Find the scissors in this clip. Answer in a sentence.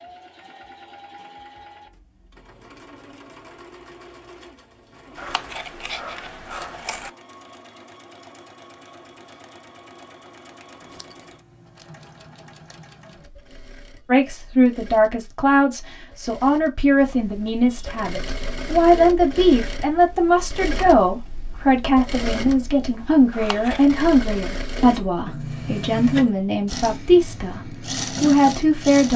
You can hear the scissors from 5.2 to 7.1 s, from 10.8 to 13.2 s and from 23.3 to 23.9 s.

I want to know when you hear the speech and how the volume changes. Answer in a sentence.
You can hear the speech from 14.1 to 29.1 s, at a steady volume.